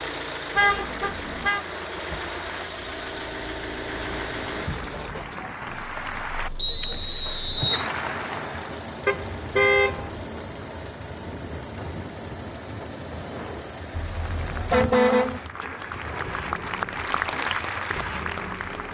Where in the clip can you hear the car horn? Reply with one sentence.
The car horn can be heard from 0.6 to 1.6 s, from 9.1 to 10.3 s and from 13.9 to 15.4 s.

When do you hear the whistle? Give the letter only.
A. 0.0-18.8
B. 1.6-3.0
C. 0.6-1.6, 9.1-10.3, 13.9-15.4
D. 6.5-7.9
D.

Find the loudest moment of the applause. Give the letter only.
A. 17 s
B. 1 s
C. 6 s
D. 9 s
A.